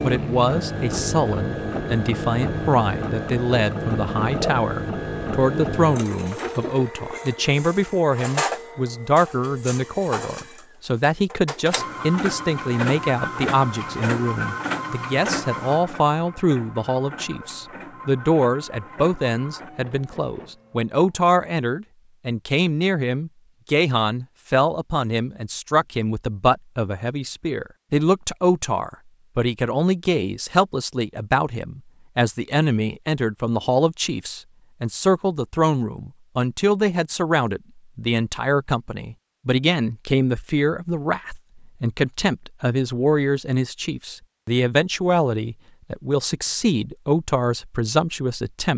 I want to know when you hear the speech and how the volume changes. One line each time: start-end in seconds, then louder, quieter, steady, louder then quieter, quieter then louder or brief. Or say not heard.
0.0-48.7 steady.